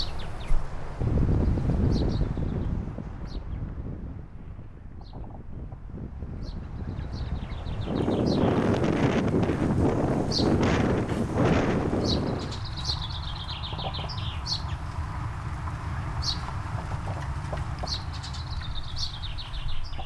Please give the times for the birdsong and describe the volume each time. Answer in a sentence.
The birdsong can be heard from 0.0 to 20.0 s, getting louder.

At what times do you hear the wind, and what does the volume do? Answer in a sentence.
The wind can be heard from 0.0 to 12.6 s, getting quieter then louder.